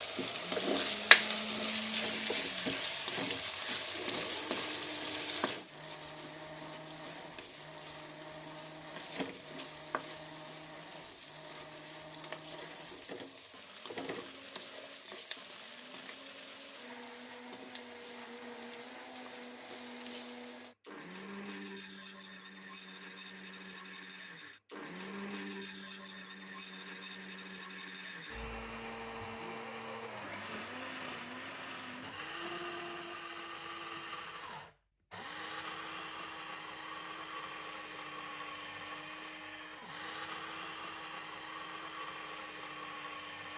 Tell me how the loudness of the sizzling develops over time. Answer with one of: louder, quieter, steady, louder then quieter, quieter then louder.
quieter.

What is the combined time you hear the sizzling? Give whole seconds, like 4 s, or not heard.
21 s.